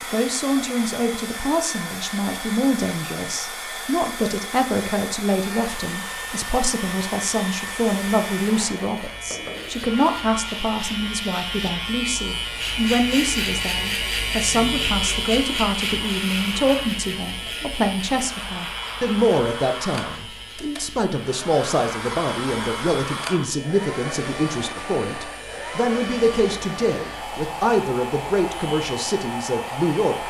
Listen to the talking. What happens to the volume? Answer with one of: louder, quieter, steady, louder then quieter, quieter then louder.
steady.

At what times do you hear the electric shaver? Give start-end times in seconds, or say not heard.
5.4-30.2.